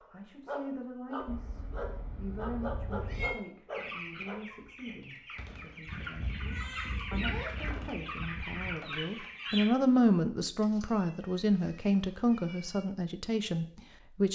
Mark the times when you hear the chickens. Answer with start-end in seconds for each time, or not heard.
3.7-9.7.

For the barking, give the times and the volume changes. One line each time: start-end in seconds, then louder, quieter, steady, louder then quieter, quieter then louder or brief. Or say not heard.
0.0-5.0 steady.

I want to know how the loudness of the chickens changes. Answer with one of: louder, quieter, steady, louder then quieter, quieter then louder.
louder.